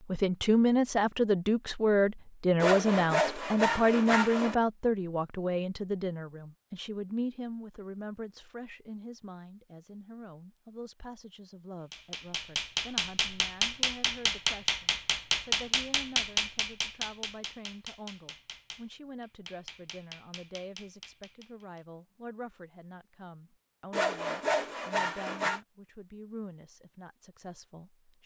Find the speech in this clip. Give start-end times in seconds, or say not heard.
0.1-28.2.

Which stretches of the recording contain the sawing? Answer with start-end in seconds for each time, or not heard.
2.6-4.5, 23.9-25.6.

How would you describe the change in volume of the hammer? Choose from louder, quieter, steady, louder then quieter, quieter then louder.
quieter.